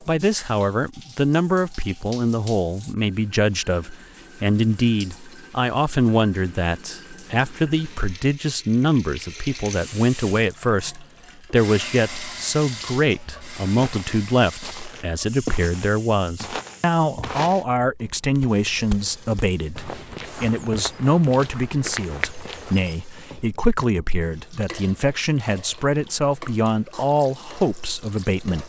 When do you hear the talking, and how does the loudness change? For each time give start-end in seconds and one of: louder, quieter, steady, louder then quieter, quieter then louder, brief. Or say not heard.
0.1-28.6 steady.